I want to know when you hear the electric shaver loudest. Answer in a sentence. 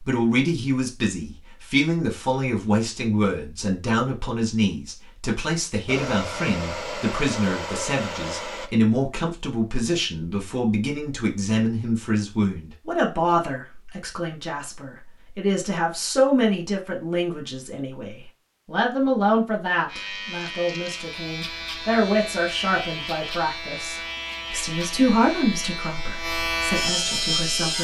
The loudest moment of the electric shaver is at 27 seconds.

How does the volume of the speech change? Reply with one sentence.
The volume of the speech stays about the same.